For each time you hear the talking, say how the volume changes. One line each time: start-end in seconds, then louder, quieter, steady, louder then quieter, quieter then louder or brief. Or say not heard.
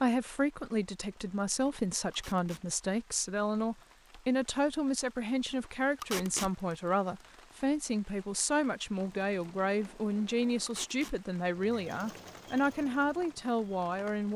0.0-14.3 steady.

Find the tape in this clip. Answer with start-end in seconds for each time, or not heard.
2.1-2.6, 6.0-6.5, 10.7-11.2.